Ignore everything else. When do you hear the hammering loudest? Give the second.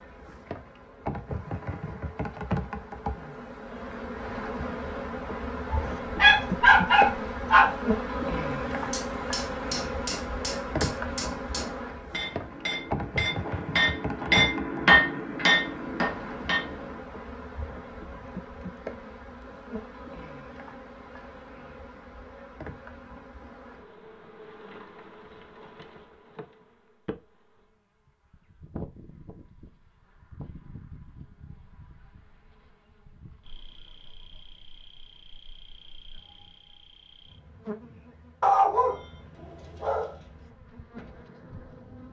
15 s.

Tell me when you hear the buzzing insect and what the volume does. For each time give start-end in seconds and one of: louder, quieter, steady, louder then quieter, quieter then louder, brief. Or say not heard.
0.0-42.0 quieter.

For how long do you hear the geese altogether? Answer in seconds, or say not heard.
not heard.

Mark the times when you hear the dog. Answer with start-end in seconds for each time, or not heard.
5.7-7.7, 38.4-40.1.